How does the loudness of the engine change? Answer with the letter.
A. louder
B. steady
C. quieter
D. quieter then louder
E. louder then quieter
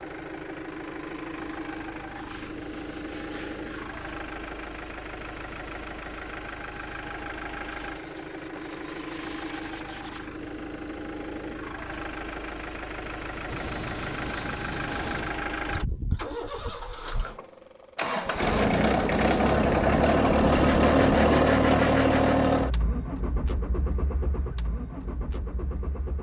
A.